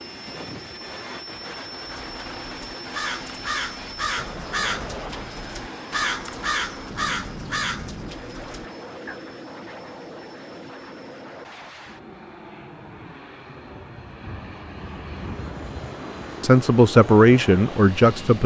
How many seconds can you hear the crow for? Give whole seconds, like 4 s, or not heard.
7 s.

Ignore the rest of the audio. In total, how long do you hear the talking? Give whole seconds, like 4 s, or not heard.
2 s.